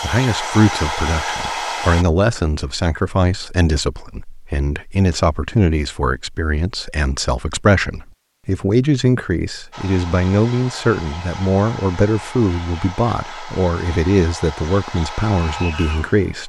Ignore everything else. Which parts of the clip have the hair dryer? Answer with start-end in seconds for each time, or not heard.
0.0-2.0, 9.7-16.4.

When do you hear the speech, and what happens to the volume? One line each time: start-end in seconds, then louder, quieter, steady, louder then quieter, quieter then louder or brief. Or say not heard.
0.0-16.4 steady.